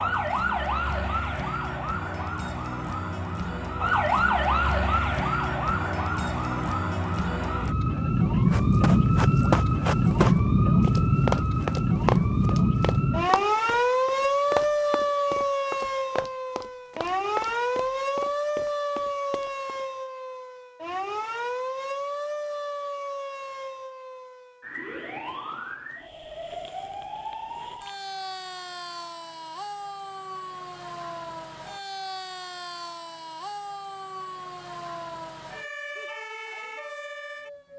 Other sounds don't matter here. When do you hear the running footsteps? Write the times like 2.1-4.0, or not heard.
8.5-19.8.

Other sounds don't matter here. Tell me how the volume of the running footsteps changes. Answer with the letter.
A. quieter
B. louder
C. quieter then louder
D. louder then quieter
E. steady
A.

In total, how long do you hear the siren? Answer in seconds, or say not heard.
38 s.